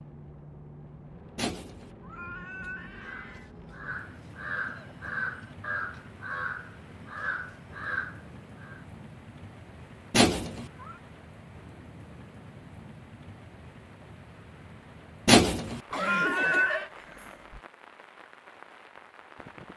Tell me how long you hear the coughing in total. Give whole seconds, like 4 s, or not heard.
3 s.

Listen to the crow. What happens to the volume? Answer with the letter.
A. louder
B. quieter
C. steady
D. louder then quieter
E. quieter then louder
A.